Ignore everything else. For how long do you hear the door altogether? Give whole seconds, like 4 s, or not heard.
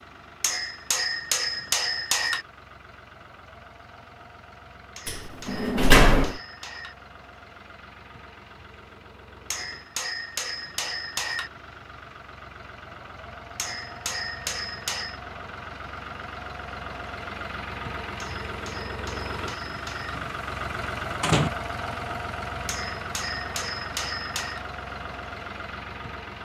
3 s.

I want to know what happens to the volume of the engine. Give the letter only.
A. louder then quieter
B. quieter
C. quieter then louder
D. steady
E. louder
E.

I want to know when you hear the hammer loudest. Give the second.
2 s.